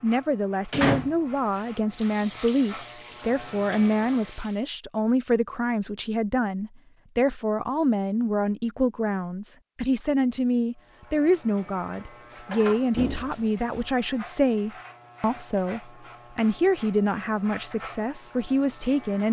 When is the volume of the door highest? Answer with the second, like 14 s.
1 s.